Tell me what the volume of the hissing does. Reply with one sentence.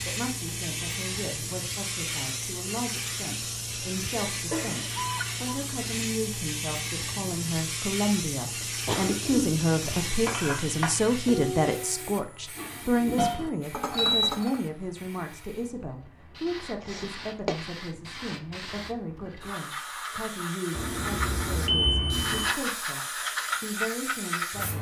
The volume of the hissing goes down, then up.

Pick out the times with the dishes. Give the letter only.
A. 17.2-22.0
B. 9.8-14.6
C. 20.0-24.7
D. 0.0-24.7
B.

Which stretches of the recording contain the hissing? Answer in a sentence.
The hissing can be heard from 0.0 to 24.7 s.